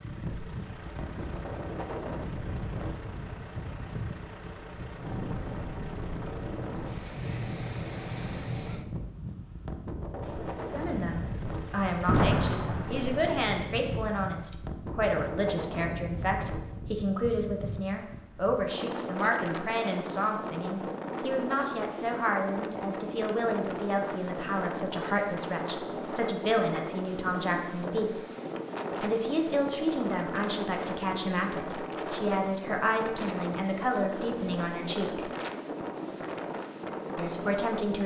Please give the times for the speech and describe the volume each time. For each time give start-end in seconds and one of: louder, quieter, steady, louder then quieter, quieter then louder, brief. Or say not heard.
10.7-28.1 steady
29.0-35.3 steady
37.1-38.0 brief.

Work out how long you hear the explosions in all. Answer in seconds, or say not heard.
2 s.